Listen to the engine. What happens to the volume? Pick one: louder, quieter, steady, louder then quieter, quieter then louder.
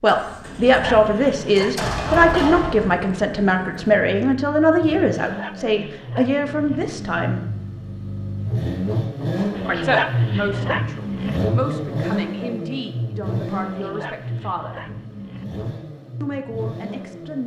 louder then quieter.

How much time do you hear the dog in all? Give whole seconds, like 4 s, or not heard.
7 s.